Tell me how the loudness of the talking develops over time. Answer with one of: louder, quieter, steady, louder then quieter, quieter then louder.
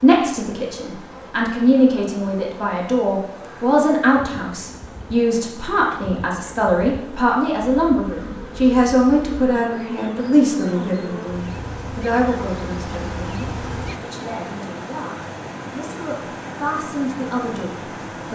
quieter.